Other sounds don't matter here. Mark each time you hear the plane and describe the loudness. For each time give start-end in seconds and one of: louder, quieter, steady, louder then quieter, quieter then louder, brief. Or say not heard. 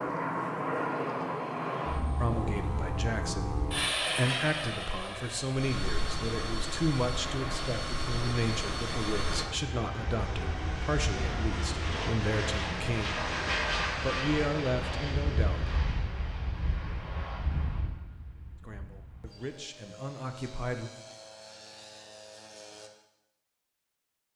0.0-22.9 quieter.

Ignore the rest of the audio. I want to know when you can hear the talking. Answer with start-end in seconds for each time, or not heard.
2.1-13.3, 13.9-15.8, 18.6-20.9.